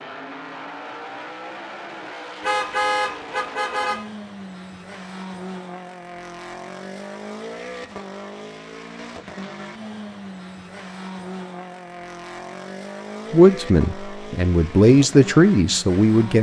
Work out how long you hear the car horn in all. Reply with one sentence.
You can hear the car horn for 2 seconds altogether.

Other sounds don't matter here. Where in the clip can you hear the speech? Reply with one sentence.
You can hear the speech from 13.3 to 16.3 s.